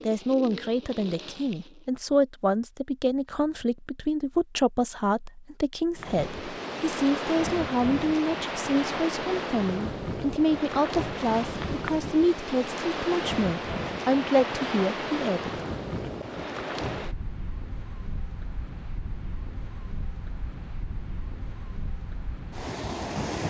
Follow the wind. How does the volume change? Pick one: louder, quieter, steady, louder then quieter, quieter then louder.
quieter.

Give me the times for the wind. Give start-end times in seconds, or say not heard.
6.0-23.4.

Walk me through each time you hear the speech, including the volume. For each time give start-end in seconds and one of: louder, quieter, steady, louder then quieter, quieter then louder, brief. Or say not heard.
0.0-15.5 steady.